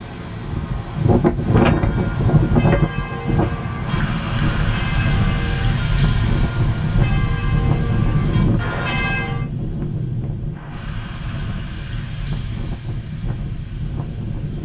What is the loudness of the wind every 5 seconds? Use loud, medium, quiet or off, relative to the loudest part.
loud, loud, medium.